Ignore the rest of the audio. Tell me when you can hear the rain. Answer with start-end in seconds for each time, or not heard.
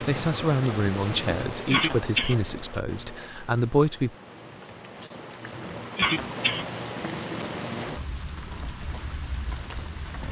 0.0-10.2.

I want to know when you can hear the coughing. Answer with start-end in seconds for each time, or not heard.
1.6-2.4, 6.0-6.7.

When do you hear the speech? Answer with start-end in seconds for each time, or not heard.
0.0-4.2.